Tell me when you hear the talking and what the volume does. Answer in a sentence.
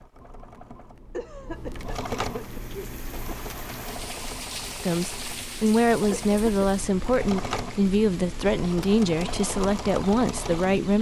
The talking can be heard from 4.8 to 10.9 s, at a steady volume.